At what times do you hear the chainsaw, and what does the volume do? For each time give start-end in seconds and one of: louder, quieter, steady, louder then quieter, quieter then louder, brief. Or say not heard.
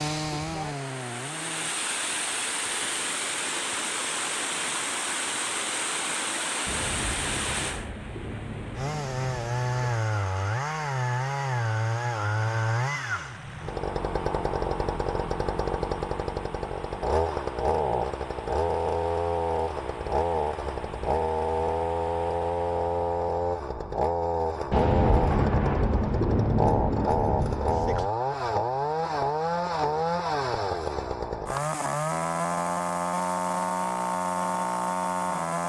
0.0-1.8 brief
8.8-35.6 steady.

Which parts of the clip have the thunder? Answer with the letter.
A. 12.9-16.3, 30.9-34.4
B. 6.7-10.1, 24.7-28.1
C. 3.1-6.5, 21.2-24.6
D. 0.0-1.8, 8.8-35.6
B.